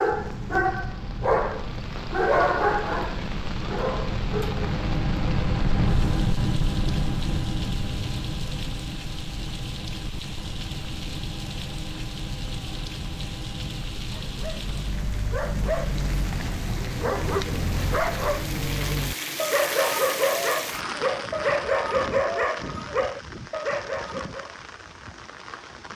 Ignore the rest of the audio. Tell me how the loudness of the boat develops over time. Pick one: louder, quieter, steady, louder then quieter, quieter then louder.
louder then quieter.